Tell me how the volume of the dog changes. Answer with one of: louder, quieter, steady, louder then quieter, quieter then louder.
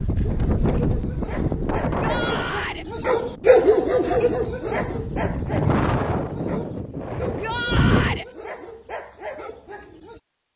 louder then quieter.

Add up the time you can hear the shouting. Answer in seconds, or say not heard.
2 s.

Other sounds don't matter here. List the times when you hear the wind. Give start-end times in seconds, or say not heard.
0.0-8.2.